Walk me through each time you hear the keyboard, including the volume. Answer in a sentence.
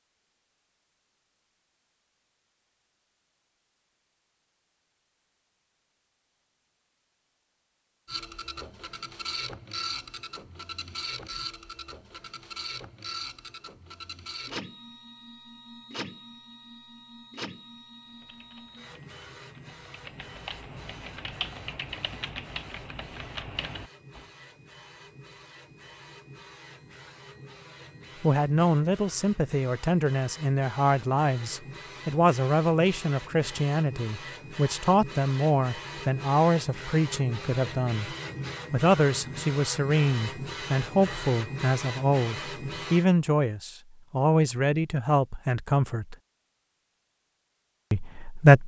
You can hear the keyboard from 18.0 to 24.3 s, getting louder.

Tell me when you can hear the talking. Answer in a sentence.
The talking can be heard from 28.2 to 46.1 s and from 47.9 to 48.6 s.